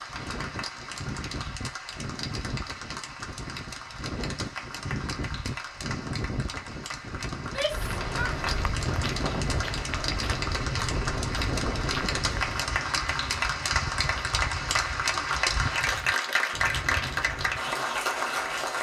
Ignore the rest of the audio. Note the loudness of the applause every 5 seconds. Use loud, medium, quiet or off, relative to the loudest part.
medium, medium, loud, loud.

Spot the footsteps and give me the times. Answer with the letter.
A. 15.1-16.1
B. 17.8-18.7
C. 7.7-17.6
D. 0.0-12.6
C.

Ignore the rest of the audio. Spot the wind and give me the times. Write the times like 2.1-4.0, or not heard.
0.0-12.6.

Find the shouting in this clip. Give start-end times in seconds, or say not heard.
7.3-8.3.